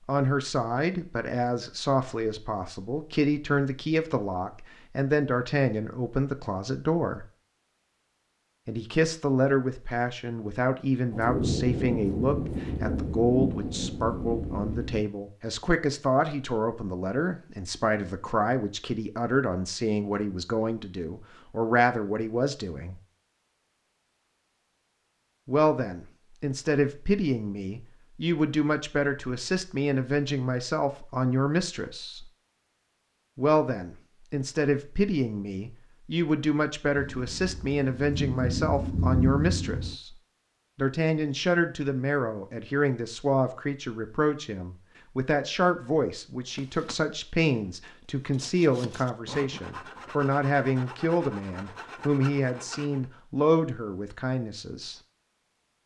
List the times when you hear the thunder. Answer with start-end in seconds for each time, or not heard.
11.1-15.1, 37.0-40.0.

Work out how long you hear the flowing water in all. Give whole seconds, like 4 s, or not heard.
not heard.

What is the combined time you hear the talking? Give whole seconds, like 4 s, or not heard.
49 s.